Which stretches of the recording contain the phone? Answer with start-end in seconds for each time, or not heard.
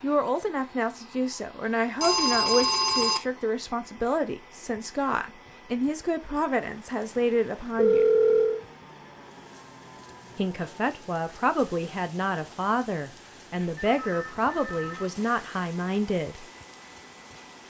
2.0-3.2, 7.8-8.6, 13.6-15.1.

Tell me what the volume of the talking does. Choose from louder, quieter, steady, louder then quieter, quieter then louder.
steady.